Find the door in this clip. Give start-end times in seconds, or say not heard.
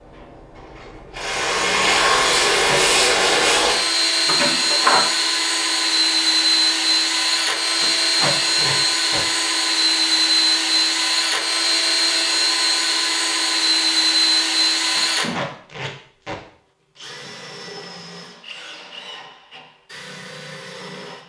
4.2-5.0.